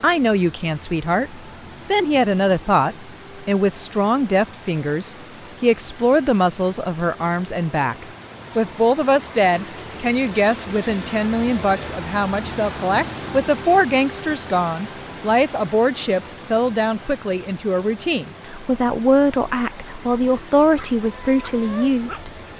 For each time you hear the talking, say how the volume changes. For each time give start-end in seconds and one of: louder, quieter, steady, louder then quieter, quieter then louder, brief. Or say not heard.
0.0-22.3 steady.